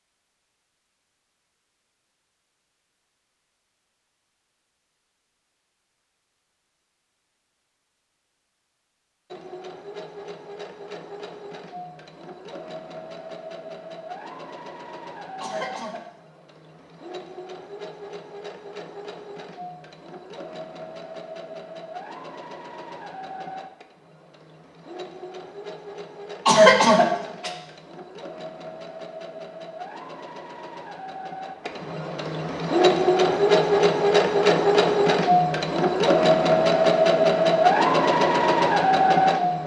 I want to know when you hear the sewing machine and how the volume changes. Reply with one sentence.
The sewing machine can be heard from 9.3 to 39.6 s, getting louder.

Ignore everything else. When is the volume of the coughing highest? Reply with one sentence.
The volume of the coughing peaks at 27 seconds.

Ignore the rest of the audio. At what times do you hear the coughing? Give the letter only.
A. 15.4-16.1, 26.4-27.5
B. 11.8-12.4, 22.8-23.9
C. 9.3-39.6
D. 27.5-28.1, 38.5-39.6
A.